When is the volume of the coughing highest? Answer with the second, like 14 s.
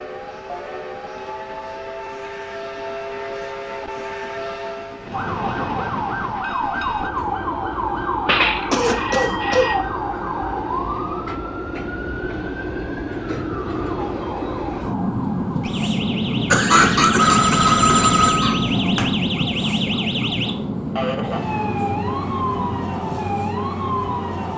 17 s.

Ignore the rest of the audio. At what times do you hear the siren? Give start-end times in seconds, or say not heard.
5.1-24.5.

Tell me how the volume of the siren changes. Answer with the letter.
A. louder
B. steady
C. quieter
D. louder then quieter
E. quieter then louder
E.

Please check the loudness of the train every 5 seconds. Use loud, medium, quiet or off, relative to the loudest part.
medium, medium, medium, loud, medium.